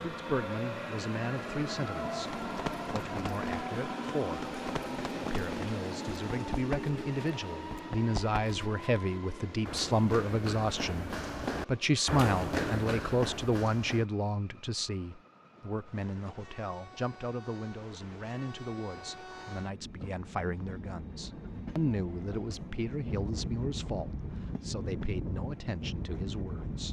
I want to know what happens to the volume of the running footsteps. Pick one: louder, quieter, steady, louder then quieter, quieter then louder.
louder.